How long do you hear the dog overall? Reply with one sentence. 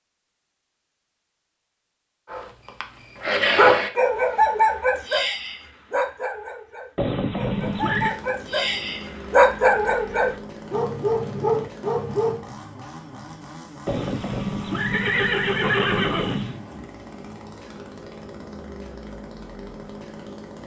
You can hear the dog for 10 seconds altogether.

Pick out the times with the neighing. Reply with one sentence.
You can hear the neighing from 7.0 to 8.2 s and from 13.8 to 16.6 s.